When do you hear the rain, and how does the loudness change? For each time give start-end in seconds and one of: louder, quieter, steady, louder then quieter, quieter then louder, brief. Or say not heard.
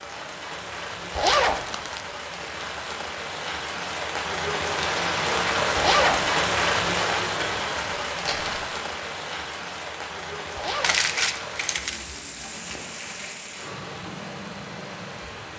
0.0-15.5 louder then quieter.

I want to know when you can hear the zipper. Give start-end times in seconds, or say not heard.
1.1-1.6, 5.8-6.2, 10.6-11.1.